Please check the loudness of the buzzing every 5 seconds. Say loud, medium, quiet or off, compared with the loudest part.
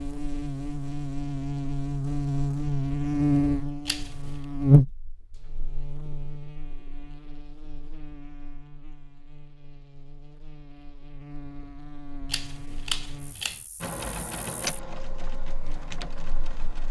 loud, quiet, quiet, quiet.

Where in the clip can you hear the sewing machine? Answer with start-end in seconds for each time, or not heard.
13.8-16.8.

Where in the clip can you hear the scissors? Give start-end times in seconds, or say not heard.
3.9-4.4, 12.2-13.7.